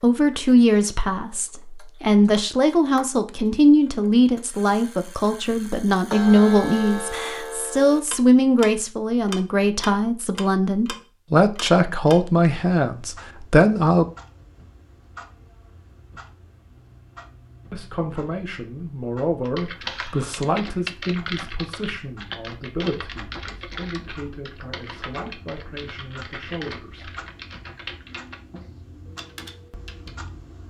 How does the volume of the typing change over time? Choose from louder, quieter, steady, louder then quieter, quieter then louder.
quieter.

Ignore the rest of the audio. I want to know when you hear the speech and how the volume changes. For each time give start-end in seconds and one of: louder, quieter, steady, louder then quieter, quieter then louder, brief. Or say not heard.
0.0-14.1 steady
17.7-27.2 quieter.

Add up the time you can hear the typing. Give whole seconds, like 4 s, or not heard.
11 s.